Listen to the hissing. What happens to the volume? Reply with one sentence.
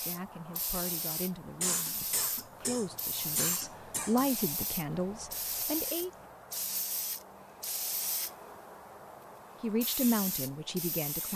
The loudness of the hissing stays about the same.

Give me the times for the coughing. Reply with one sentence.
The coughing can be heard from 1.6 to 4.2 s.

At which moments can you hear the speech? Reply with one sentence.
You can hear the speech from 0.0 to 6.1 s and from 9.6 to 11.3 s.